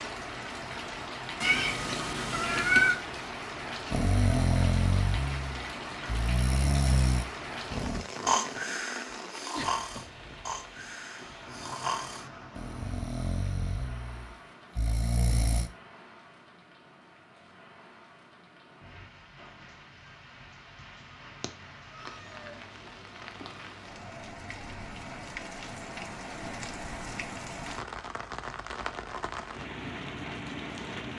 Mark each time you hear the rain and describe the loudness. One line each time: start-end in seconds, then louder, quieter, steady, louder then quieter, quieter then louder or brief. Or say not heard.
0.0-31.1 quieter then louder.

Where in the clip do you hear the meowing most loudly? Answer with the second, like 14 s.
3 s.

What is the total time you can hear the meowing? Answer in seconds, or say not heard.
3 s.